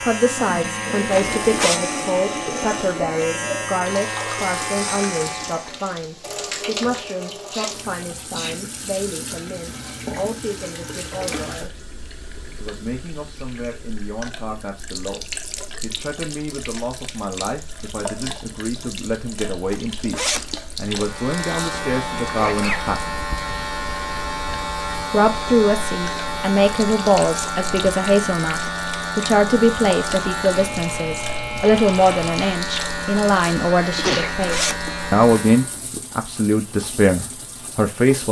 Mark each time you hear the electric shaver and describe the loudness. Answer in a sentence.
The electric shaver can be heard from 0.0 to 5.8 s, at a steady volume; and from 20.9 to 35.8 s, at a steady volume.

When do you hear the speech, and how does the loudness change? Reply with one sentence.
The speech can be heard from 0.0 to 11.7 s, getting quieter; from 12.6 to 23.2 s, getting louder; and from 25.1 to 38.2 s, at a steady volume.